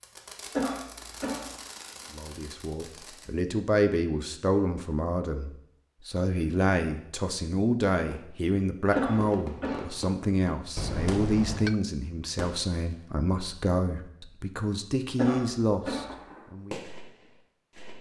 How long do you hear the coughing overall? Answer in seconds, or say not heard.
3 s.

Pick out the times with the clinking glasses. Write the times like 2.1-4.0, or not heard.
10.8-11.8.